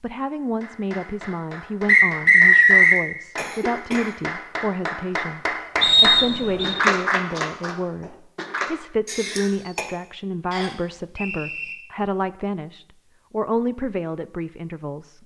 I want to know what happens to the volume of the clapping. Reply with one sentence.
The loudness of the clapping goes up.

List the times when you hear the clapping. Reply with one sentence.
You can hear the clapping from 0.6 to 8.7 s.